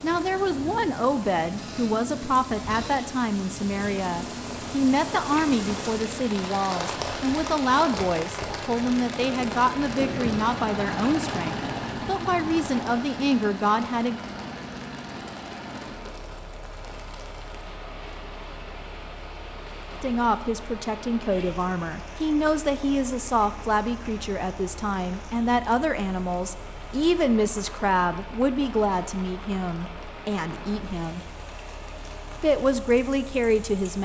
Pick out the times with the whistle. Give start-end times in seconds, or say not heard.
not heard.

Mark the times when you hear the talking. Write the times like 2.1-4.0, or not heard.
0.0-14.2, 20.0-31.2, 32.4-34.0.